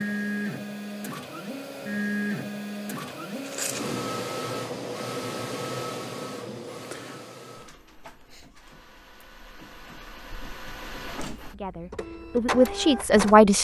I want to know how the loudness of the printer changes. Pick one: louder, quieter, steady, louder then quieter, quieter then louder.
quieter then louder.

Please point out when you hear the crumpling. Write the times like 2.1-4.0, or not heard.
3.0-3.9.